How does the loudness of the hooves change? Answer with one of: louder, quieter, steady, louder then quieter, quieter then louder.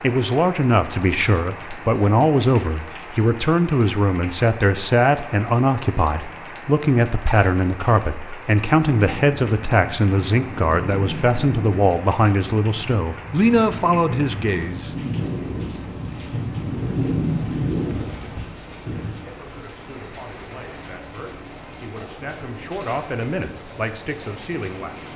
louder.